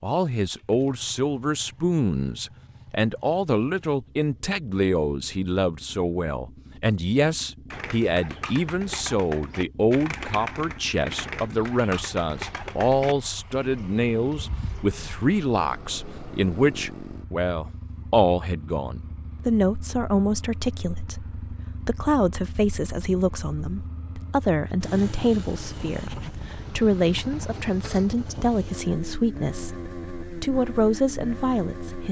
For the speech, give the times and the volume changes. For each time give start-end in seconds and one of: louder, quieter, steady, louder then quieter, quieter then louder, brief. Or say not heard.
0.0-32.0 steady.